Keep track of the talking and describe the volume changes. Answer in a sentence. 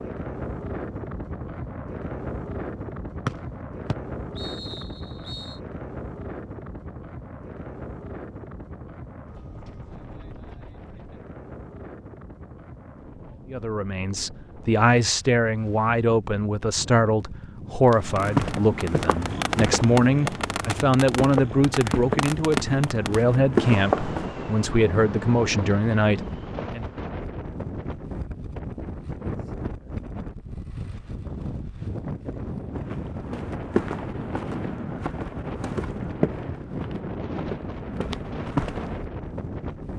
The volume of the talking stays about the same.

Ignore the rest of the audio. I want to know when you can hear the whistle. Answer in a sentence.
You can hear the whistle from 3.2 to 5.6 s.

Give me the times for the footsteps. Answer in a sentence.
The footsteps can be heard from 17.9 to 24.3 s and from 32.8 to 39.0 s.